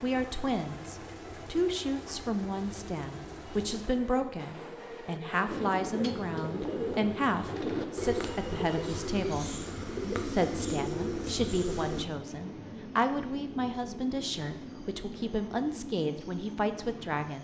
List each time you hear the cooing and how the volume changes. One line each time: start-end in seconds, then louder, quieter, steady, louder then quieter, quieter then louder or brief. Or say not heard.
5.5-12.1 steady.